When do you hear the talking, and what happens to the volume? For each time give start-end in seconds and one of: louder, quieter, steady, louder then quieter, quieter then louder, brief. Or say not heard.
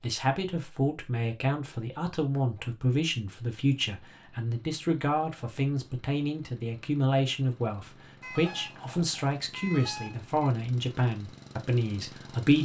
0.0-12.6 steady.